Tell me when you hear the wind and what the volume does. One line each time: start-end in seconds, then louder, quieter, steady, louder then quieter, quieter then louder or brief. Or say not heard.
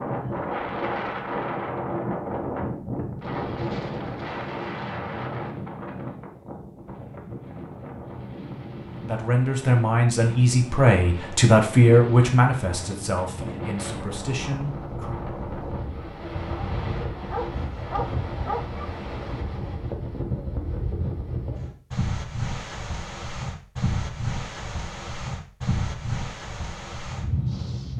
0.0-27.9 quieter then louder.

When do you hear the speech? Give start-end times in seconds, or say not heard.
9.0-15.2.